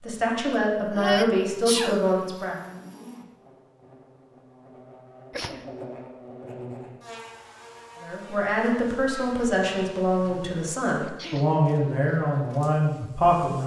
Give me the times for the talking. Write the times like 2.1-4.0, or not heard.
0.0-2.5, 8.0-13.6.